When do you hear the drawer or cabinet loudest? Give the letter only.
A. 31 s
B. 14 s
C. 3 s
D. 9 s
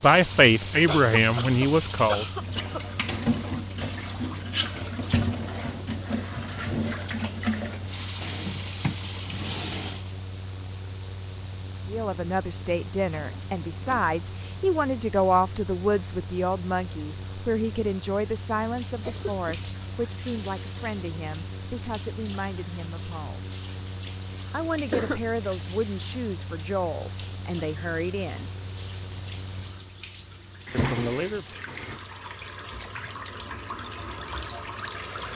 A.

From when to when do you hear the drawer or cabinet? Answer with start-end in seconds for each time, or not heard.
8.2-10.1, 13.0-14.2, 30.6-32.0.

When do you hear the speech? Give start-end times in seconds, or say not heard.
0.0-2.2, 11.8-23.5, 24.5-28.5, 30.7-31.4.